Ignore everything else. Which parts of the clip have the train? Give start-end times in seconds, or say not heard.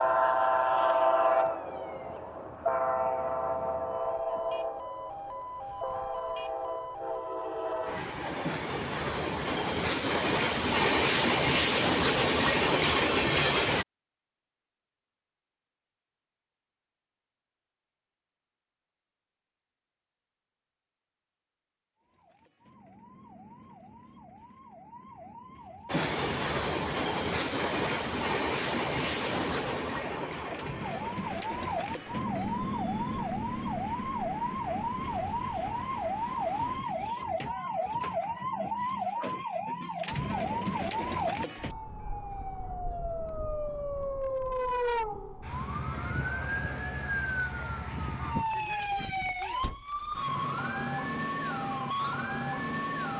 0.0-13.8, 25.9-36.8.